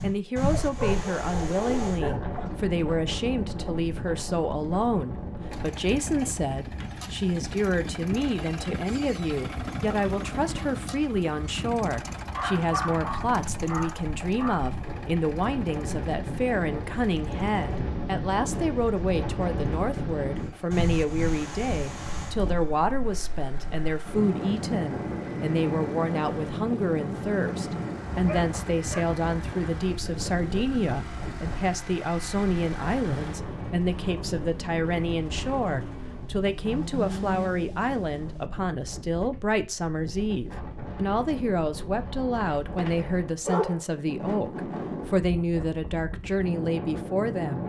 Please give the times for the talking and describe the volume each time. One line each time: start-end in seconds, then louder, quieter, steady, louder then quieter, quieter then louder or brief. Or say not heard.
0.0-47.6 steady.